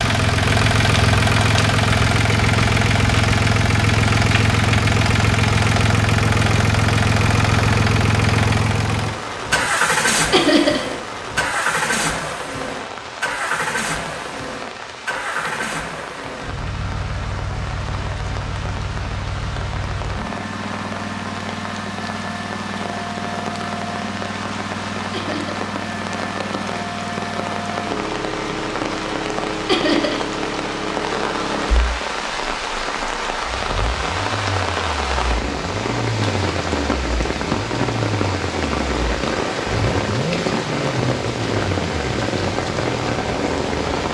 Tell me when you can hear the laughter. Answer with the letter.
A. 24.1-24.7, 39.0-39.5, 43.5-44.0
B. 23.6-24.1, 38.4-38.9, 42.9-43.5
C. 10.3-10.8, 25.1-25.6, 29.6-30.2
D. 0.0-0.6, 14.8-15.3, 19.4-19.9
C.